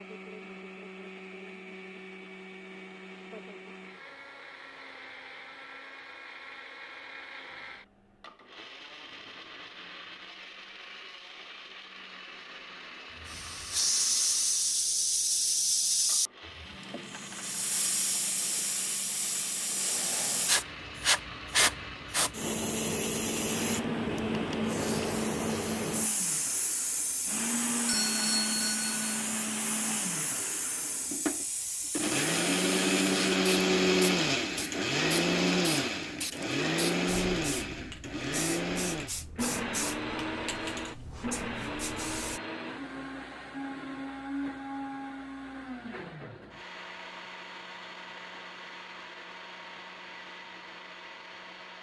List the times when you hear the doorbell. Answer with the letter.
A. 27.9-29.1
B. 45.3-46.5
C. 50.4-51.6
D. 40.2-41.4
A.